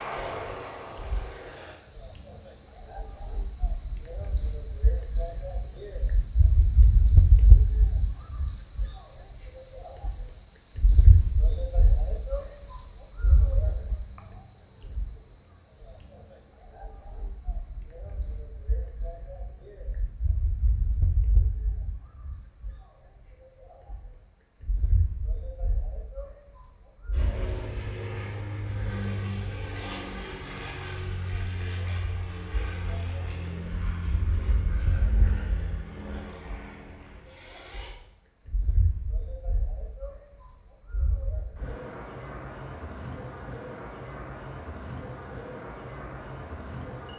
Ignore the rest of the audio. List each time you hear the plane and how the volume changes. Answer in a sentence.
You can hear the plane briefly from 0.0 to 1.8 s; and from 27.1 to 38.0 s, getting quieter.